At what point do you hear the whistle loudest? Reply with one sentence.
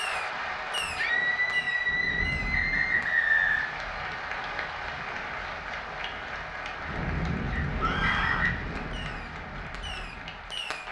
The volume of the whistle peaks at 3 seconds.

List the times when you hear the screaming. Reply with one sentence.
The screaming can be heard from 0.9 to 3.0 s and from 7.8 to 8.5 s.